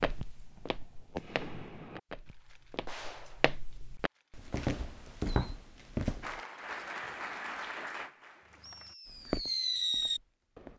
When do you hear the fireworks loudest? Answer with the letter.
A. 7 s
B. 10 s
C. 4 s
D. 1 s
B.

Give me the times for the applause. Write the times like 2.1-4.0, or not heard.
6.2-8.9.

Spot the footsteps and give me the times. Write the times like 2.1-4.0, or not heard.
0.0-6.4, 9.1-10.7.